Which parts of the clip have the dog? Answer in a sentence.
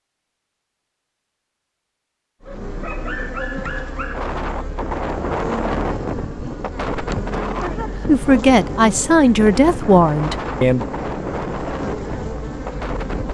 You can hear the dog from 2.5 to 4.3 s.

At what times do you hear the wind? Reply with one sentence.
You can hear the wind from 4.1 to 13.2 s.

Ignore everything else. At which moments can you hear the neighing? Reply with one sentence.
The neighing can't be heard in this clip.